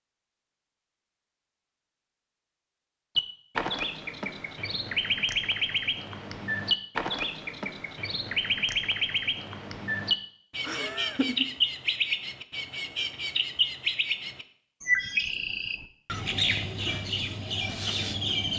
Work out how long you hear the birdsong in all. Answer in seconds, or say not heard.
15 s.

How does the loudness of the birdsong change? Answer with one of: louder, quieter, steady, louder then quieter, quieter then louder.
steady.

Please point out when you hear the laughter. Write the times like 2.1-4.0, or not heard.
10.6-11.4.